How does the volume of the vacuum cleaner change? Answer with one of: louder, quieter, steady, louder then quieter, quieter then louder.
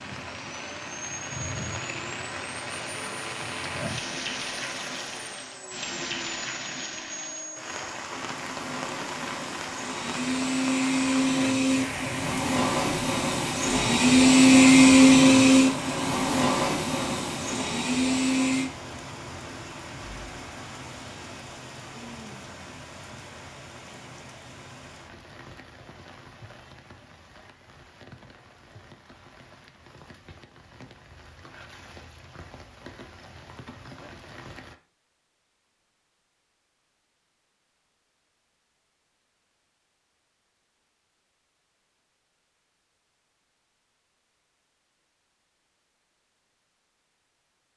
louder.